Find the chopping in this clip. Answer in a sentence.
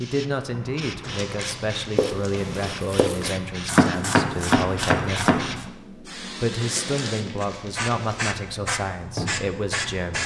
You can hear the chopping from 1.9 to 5.7 s.